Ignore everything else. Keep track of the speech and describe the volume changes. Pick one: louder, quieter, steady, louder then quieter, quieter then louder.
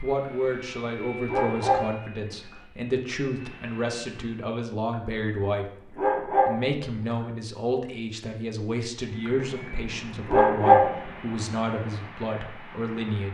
steady.